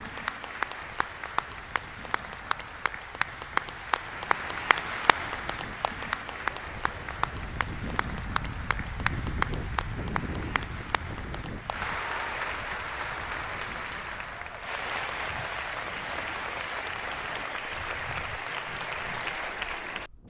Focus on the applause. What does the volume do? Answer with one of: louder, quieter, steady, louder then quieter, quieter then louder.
steady.